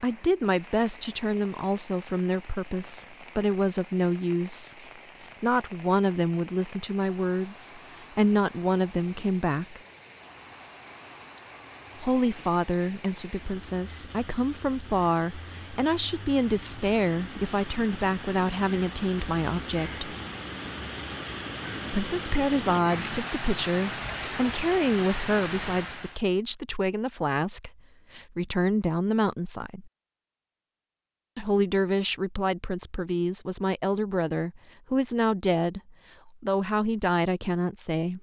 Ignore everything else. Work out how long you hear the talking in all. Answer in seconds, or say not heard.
32 s.